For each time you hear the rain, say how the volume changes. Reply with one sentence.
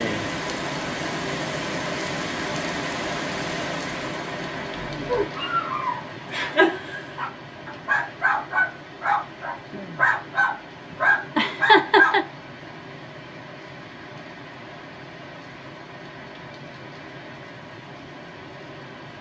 You can hear the rain from 0.0 to 19.1 s, getting quieter.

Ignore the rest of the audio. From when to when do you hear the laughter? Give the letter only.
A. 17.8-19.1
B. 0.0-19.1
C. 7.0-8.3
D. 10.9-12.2
D.